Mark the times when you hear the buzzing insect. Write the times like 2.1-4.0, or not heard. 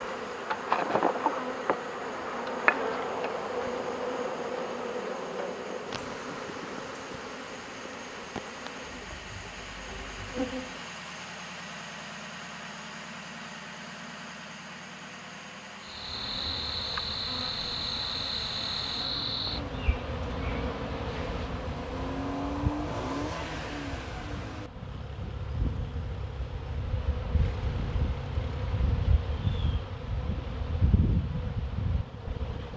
0.0-10.9, 15.8-32.7.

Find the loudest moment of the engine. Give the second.
23 s.